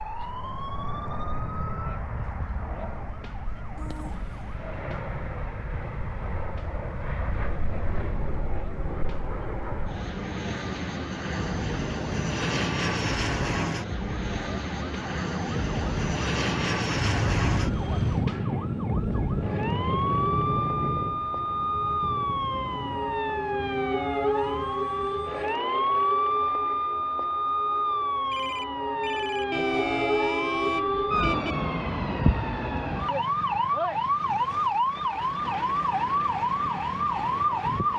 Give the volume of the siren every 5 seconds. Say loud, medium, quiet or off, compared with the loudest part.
quiet, quiet, quiet, medium, loud, loud, loud, loud.